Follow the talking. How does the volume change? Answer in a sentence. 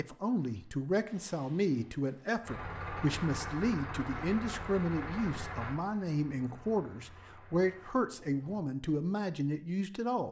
The loudness of the talking stays about the same.